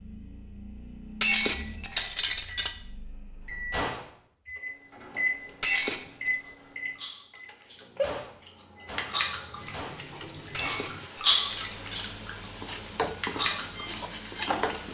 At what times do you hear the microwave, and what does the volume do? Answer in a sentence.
The microwave can be heard from 0.0 to 14.8 s, getting louder then quieter.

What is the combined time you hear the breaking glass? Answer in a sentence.
The breaking glass can be heard for 4 seconds in total.